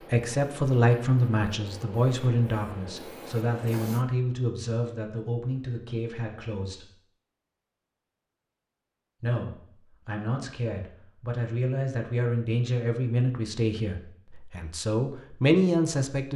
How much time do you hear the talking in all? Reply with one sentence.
The talking can be heard for 14 seconds in total.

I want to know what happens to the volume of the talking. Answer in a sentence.
The volume of the talking goes down, then up.